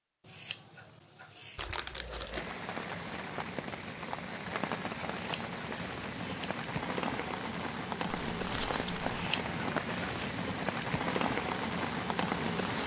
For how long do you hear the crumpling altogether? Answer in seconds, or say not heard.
2 s.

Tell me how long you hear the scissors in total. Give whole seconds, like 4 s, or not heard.
5 s.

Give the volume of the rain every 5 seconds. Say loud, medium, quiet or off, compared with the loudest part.
medium, loud, loud.